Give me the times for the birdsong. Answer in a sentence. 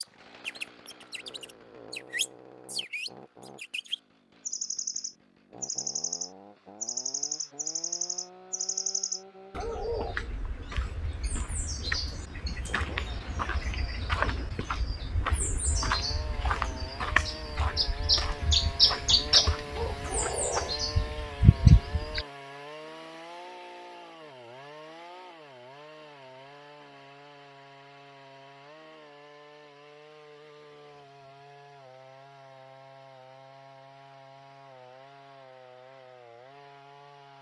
You can hear the birdsong from 0.0 to 22.2 s.